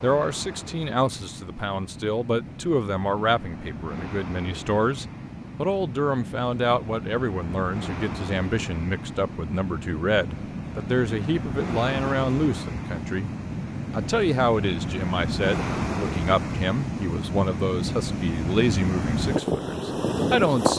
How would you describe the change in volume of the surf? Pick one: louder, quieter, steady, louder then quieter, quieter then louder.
louder.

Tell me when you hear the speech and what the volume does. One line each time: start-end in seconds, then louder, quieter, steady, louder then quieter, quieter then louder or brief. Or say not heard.
0.0-13.3 steady
13.9-20.7 quieter.